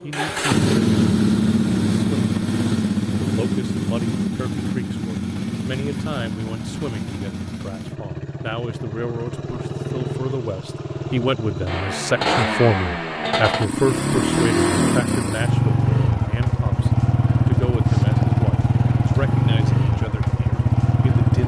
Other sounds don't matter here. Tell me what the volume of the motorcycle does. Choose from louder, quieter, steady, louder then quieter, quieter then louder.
quieter then louder.